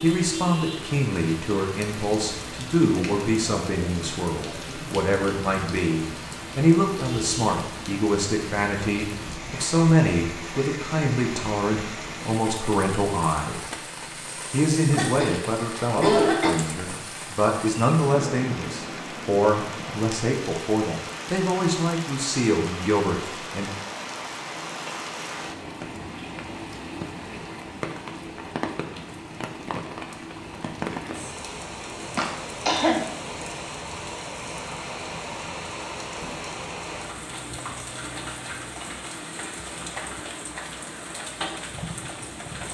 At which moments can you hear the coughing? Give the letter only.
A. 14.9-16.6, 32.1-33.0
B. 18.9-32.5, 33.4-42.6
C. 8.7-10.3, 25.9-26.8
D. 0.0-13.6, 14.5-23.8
A.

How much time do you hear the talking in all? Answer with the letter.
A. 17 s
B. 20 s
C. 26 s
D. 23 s
D.